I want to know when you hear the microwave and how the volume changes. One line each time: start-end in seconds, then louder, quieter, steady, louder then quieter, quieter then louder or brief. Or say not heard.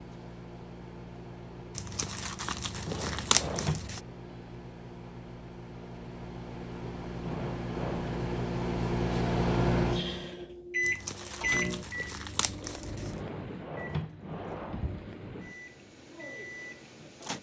0.0-17.3 louder then quieter.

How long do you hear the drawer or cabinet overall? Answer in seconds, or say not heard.
4 s.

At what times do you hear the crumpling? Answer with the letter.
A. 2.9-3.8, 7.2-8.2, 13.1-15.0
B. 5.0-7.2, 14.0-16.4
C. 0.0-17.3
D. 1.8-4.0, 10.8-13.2
D.